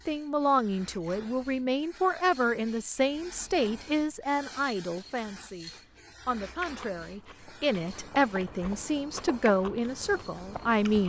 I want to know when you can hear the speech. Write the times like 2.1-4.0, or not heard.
0.1-11.0.